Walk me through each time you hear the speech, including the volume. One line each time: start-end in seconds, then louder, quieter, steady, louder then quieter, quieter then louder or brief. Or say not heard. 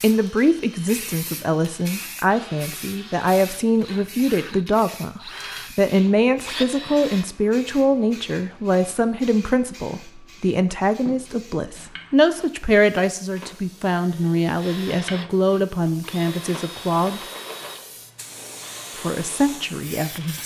0.0-17.2 steady
18.9-20.4 brief.